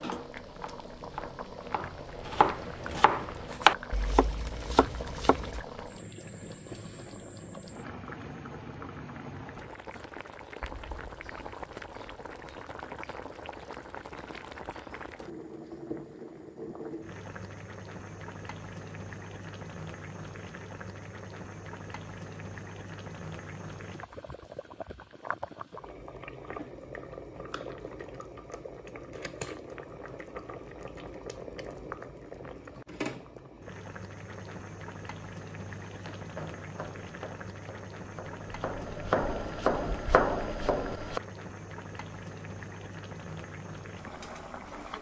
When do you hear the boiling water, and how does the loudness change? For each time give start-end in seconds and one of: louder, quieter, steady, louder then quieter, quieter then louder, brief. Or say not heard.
0.0-44.9 steady.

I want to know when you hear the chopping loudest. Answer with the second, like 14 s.
4 s.